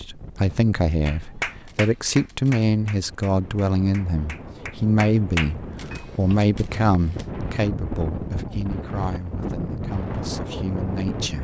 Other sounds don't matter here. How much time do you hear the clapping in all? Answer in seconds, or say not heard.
5 s.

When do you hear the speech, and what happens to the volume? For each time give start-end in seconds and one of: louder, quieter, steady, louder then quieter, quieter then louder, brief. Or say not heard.
0.0-11.3 quieter.